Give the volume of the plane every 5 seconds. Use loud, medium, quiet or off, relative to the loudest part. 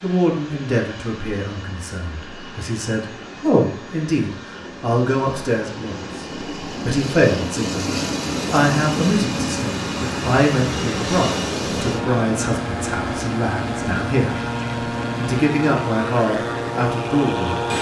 quiet, loud, loud, loud.